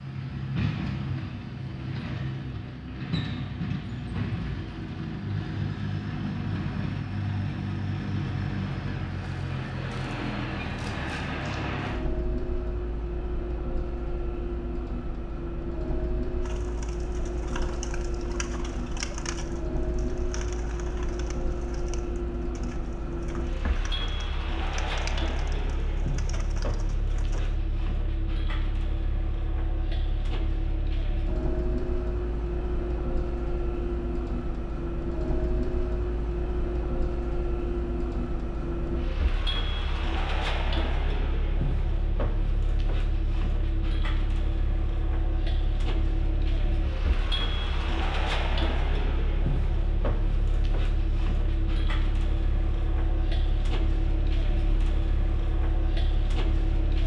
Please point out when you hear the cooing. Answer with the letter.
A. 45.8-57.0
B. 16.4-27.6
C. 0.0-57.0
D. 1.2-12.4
B.